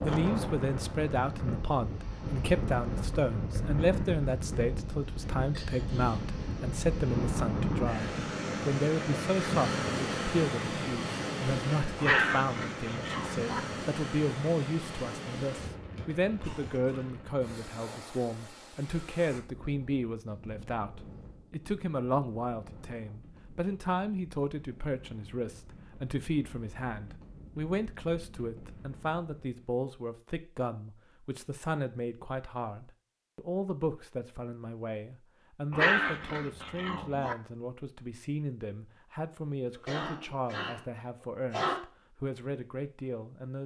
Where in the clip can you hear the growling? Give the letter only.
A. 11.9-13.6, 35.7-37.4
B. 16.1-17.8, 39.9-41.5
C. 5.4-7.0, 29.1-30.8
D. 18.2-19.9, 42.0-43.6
A.